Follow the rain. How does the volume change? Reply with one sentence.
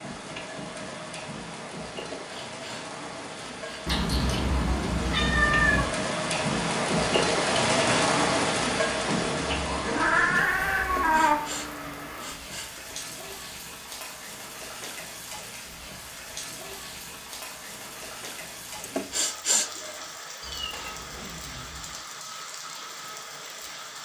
The loudness of the rain goes up, then down.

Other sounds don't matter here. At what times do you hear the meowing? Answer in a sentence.
The meowing can be heard from 3.9 to 5.8 s, from 9.8 to 11.3 s and from 20.4 to 22.0 s.